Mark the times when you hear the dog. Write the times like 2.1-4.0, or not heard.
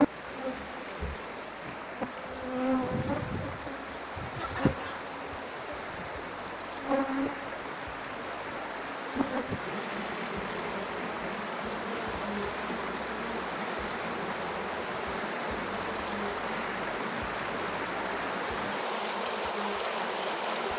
not heard.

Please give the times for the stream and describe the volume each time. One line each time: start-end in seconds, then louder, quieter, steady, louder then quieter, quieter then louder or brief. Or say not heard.
0.0-20.7 louder.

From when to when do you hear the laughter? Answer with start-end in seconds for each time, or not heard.
4.3-5.1.